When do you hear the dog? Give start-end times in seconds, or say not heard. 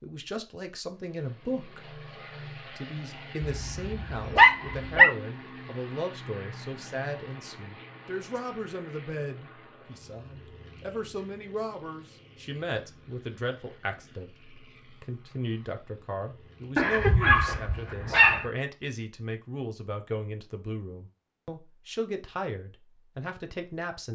3.6-5.1, 16.8-18.4.